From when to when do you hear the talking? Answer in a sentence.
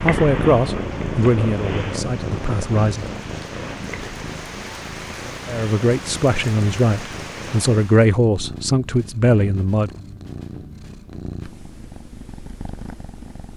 You can hear the talking from 0.0 to 3.0 s and from 5.5 to 9.9 s.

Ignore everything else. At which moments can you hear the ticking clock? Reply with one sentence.
The ticking clock can't be heard in this clip.